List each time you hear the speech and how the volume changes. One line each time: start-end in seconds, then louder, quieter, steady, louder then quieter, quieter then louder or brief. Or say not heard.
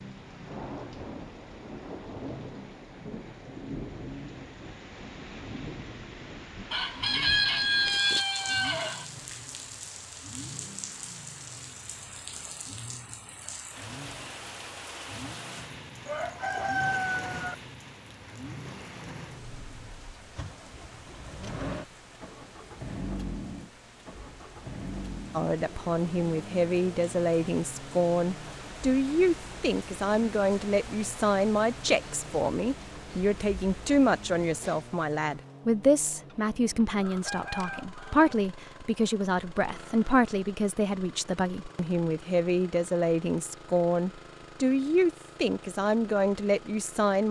25.4-47.2 steady.